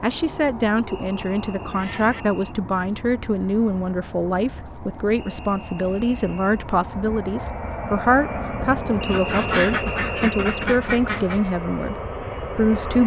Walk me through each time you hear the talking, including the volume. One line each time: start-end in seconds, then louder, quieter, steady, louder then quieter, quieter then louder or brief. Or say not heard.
0.0-13.0 steady.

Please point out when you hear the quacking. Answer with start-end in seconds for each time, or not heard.
0.2-2.2, 9.1-11.4.